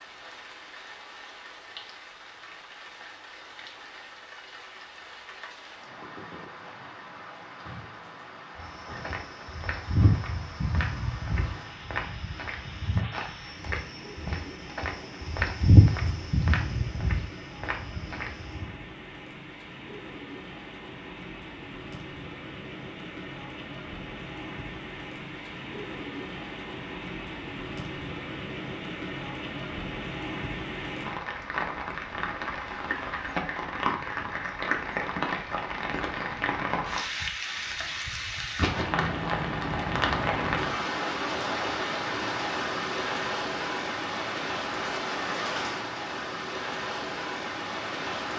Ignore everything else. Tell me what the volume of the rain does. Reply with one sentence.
The loudness of the rain goes up.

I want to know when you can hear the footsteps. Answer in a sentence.
The footsteps can be heard from 8.6 to 18.8 s.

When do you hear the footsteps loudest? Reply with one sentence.
The loudest moment of the footsteps is at 16 seconds.